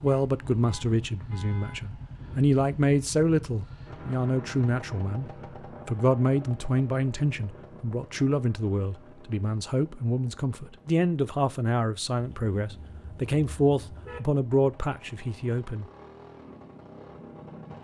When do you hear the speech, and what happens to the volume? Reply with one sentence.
You can hear the speech from 0.0 to 15.8 s, at a steady volume.